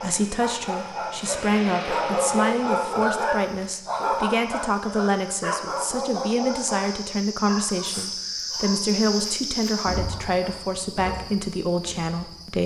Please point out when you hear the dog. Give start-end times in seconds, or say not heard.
0.0-10.6.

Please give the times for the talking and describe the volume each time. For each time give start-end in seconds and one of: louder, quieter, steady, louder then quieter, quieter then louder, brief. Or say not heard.
0.0-12.6 steady.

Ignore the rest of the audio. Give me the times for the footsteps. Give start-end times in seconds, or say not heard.
not heard.